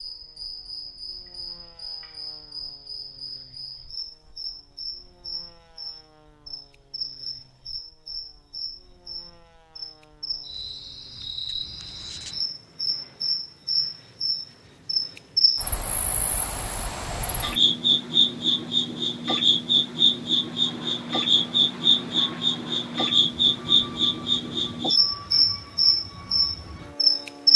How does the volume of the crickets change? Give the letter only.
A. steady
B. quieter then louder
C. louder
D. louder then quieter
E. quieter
C.